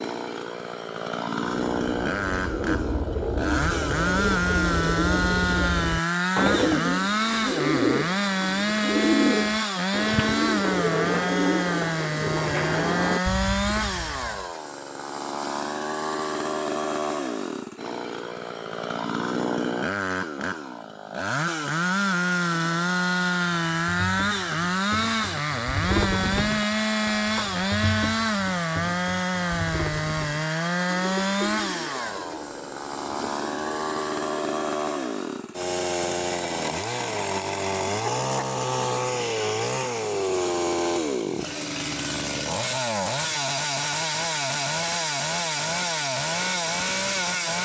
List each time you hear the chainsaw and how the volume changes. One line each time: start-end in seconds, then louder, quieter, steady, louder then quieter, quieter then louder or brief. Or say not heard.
0.0-47.6 steady.